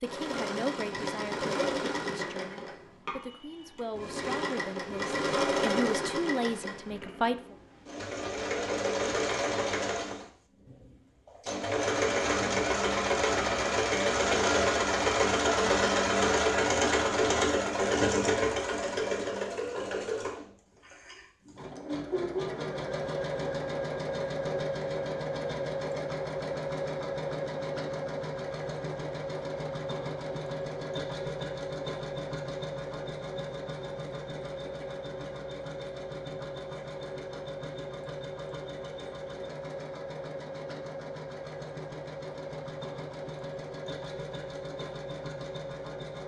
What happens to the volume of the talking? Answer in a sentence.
The loudness of the talking goes down, then up.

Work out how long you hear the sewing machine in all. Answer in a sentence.
The sewing machine can be heard for 46 seconds in total.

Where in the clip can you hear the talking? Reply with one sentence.
The talking can be heard from 0.0 to 7.5 s.